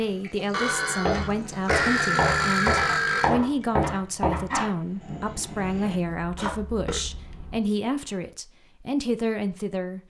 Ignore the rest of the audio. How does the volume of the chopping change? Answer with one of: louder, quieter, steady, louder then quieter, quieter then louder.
quieter.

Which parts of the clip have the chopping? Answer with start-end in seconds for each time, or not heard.
1.1-6.5.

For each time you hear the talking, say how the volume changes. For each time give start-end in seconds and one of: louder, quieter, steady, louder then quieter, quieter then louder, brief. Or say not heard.
0.0-10.0 steady.